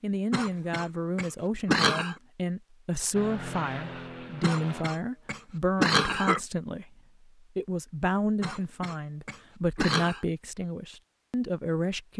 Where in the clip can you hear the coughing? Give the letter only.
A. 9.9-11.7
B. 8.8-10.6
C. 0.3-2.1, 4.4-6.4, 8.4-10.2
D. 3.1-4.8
C.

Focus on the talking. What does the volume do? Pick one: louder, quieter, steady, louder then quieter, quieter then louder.
steady.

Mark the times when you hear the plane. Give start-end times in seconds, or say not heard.
3.1-4.8.